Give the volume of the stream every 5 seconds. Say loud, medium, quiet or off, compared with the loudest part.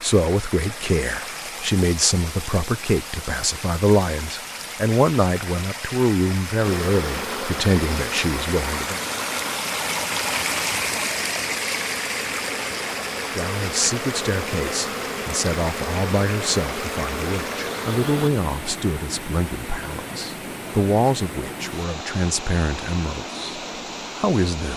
medium, loud, loud, medium, medium.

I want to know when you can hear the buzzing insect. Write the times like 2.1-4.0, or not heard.
6.6-18.3.